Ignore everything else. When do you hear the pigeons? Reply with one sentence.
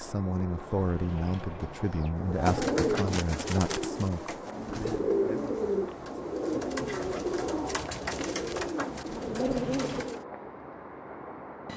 The pigeons can be heard from 2.1 to 10.2 s.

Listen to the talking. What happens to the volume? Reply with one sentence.
The volume of the talking goes down.